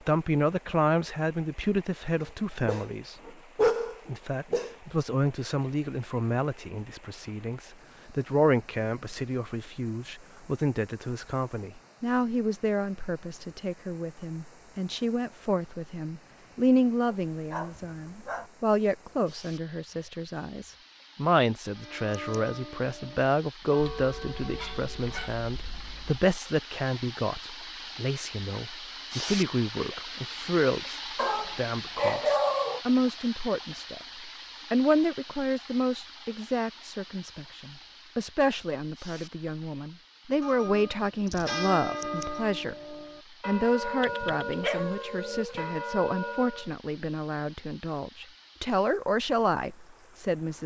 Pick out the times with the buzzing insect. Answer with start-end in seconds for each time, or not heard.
not heard.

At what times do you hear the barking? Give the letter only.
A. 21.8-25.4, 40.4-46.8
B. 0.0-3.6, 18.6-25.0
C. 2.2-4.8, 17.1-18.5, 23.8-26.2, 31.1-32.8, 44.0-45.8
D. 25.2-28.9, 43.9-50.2
C.